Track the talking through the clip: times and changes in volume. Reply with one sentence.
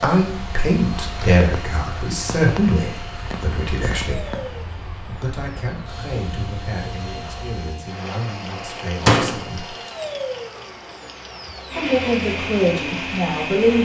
The talking can be heard from 0.0 to 9.8 s, getting quieter; and briefly from 11.8 to 13.8 s.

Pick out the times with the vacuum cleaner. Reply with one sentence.
The vacuum cleaner can be heard from 0.0 to 13.8 s.